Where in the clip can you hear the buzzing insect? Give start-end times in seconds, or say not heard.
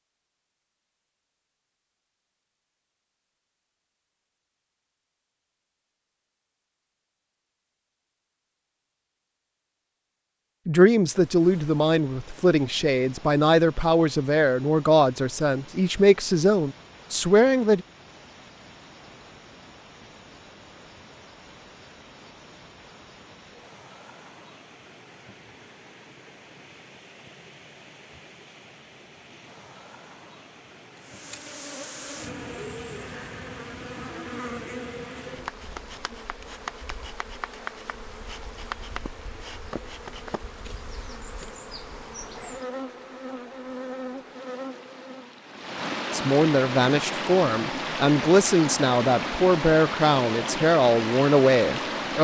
31.0-45.4.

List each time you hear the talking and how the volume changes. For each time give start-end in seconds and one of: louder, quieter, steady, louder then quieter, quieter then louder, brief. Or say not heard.
10.7-17.9 steady
46.1-52.1 steady.